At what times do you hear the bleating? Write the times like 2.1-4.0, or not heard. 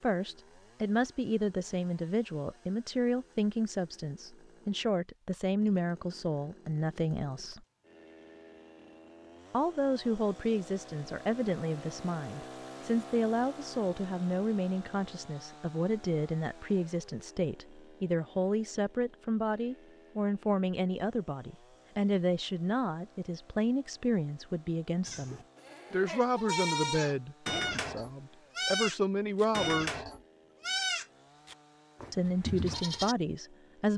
25.0-33.1.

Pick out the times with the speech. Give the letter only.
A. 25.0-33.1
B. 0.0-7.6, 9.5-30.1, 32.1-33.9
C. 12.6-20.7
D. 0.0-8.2
B.